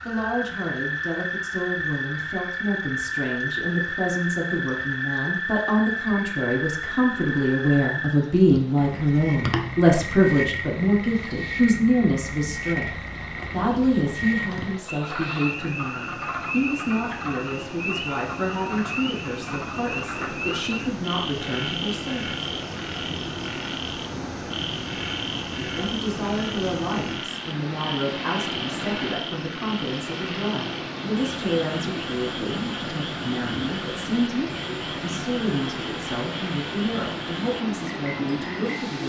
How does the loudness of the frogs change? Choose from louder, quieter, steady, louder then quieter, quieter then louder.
quieter.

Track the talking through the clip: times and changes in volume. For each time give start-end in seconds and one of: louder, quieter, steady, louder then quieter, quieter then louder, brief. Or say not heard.
0.1-22.4 louder then quieter
25.5-39.0 steady.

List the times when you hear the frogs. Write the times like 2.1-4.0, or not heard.
0.0-39.0.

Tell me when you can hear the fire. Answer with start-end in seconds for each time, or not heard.
not heard.